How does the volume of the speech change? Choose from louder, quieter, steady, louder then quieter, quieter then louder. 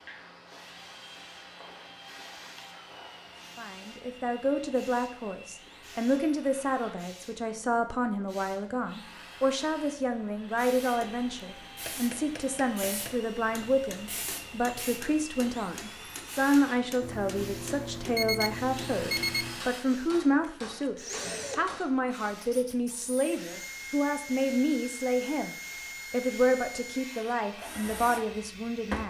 steady.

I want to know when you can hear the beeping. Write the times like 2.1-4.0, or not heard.
17.0-19.6.